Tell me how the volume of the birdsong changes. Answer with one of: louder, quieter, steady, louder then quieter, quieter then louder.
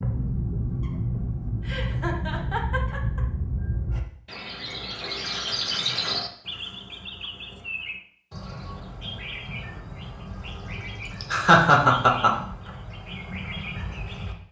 quieter.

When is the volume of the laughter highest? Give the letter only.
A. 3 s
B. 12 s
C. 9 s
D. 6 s
B.